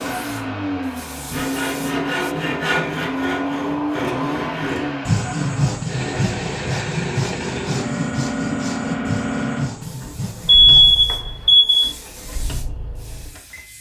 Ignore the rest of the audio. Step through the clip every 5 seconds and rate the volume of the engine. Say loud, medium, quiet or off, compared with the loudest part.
loud, loud, quiet.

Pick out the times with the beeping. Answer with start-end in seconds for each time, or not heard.
10.4-11.9.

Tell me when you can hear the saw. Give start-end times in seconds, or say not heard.
1.3-10.9.